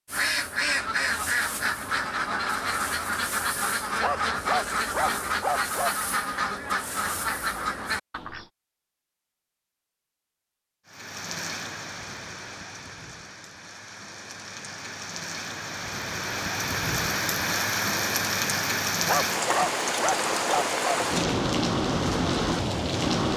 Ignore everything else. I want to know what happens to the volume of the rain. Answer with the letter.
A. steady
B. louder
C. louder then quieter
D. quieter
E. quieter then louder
B.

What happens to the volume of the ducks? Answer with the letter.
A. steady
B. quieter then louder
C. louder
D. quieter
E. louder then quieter
A.